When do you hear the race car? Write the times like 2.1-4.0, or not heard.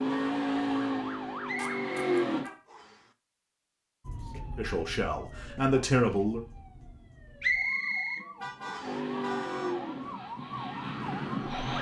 0.0-2.5, 8.8-11.7.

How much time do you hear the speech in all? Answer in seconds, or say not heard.
2 s.